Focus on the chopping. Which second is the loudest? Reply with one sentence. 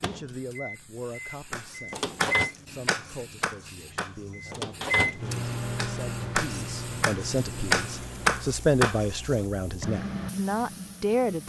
The volume of the chopping peaks at 8 seconds.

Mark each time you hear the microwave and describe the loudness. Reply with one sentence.
The microwave can be heard briefly from 0.0 to 2.5 s; and from 4.3 to 8.4 s, getting quieter.